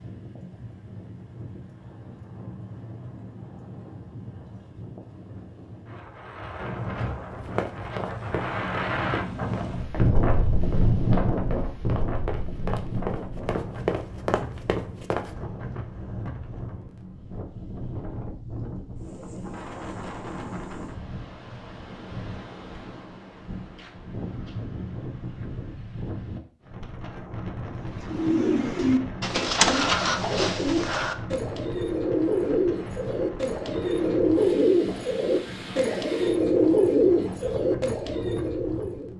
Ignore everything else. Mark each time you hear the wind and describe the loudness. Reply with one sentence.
The wind can be heard from 0.0 to 39.1 s, getting louder then quieter.